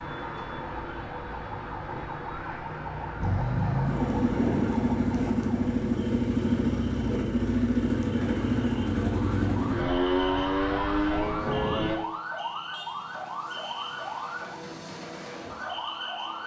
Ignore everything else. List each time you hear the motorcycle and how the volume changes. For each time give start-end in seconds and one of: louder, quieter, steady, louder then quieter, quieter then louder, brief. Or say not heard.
3.2-11.9 steady.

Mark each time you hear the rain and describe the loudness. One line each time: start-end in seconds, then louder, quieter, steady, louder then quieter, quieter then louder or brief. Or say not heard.
not heard.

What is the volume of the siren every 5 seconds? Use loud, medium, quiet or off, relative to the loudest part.
loud, medium, loud, loud.